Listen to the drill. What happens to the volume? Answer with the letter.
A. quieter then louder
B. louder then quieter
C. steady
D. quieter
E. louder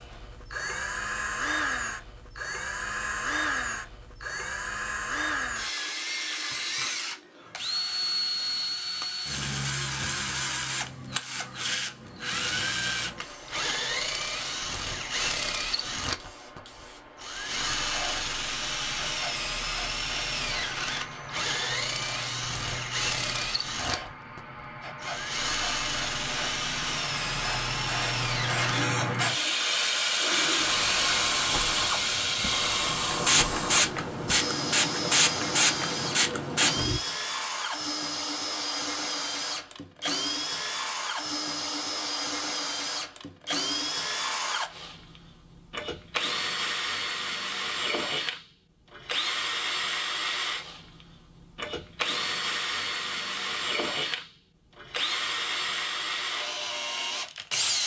C.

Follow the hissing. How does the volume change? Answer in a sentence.
The loudness of the hissing goes up.